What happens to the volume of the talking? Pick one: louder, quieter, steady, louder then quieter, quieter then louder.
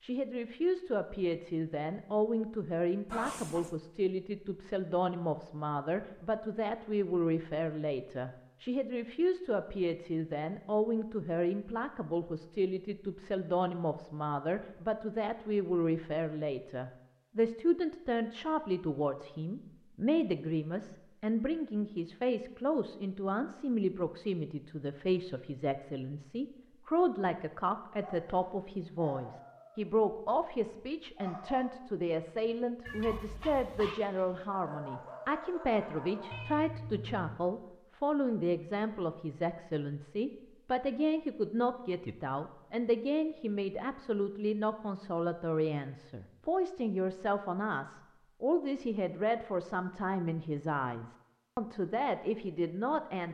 steady.